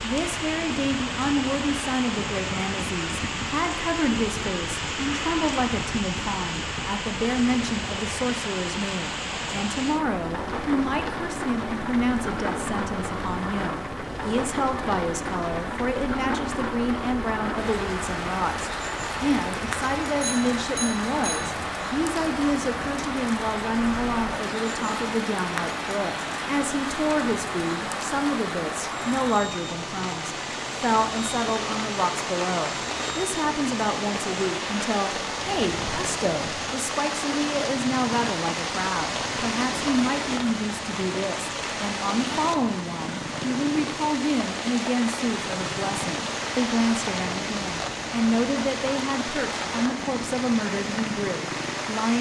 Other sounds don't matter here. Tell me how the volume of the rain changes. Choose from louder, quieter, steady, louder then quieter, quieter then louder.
steady.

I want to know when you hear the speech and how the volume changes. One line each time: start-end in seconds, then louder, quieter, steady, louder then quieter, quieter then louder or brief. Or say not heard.
0.0-52.1 steady.